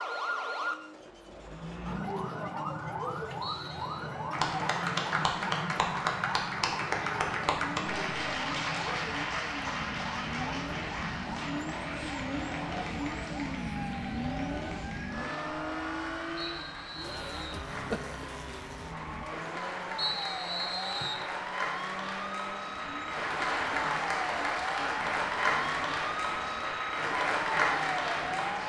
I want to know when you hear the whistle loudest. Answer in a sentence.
The loudest moment of the whistle is at 20 seconds.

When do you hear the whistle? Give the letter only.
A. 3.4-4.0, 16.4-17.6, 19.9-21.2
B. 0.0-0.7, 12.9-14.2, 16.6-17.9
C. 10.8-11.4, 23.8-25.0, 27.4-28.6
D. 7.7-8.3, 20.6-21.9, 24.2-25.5
A.